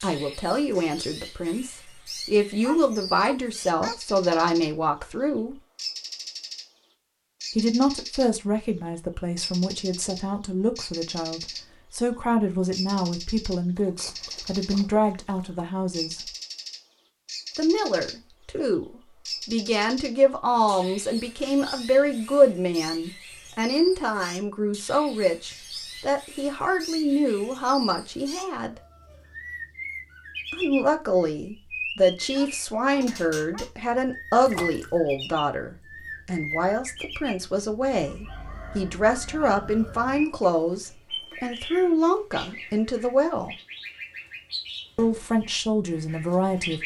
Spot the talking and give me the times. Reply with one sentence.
The talking can be heard from 0.0 to 5.6 s, from 7.5 to 16.2 s, from 17.6 to 28.8 s, from 30.5 to 43.5 s and from 45.0 to 46.8 s.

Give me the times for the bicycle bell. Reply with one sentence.
The bicycle bell can't be heard in this clip.